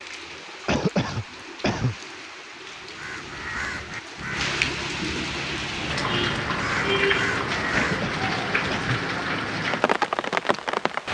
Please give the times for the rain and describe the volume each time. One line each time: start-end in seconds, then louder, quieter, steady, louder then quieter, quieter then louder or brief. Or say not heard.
0.0-11.0 louder.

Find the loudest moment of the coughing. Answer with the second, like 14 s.
1 s.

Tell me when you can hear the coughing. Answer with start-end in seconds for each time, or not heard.
0.7-1.9, 7.7-9.0.